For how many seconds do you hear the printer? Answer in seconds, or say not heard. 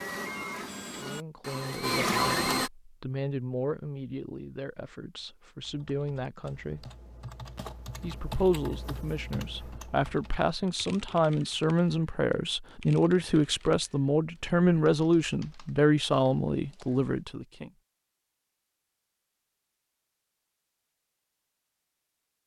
3 s.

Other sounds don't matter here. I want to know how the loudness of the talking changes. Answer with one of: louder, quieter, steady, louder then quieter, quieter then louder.
louder.